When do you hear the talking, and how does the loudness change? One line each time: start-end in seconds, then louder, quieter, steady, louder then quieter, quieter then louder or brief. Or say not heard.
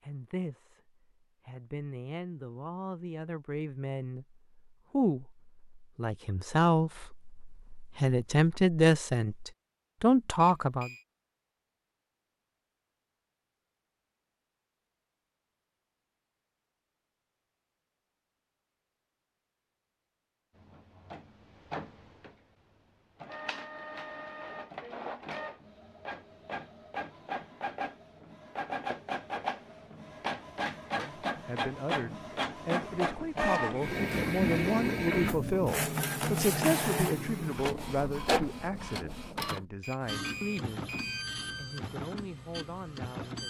0.0-10.9 louder
30.9-40.9 louder then quieter
41.5-43.4 brief.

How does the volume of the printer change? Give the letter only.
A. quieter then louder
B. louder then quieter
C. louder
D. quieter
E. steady
B.